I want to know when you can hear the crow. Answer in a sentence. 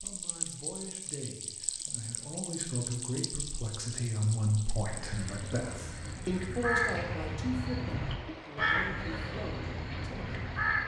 You can hear the crow from 4.8 to 10.8 s.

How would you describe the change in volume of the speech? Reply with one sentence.
The loudness of the speech goes up, then down.